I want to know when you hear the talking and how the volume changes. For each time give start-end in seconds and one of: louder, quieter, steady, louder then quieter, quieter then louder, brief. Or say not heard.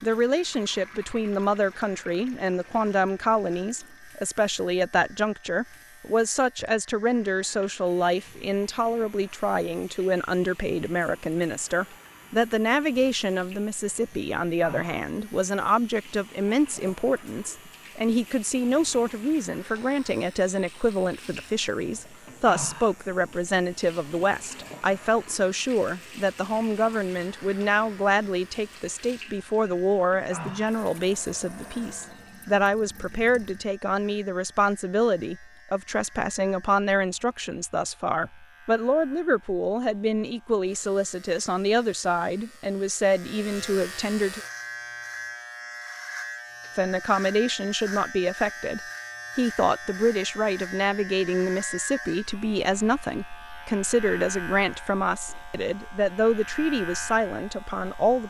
0.0-44.4 steady
46.8-58.2 steady.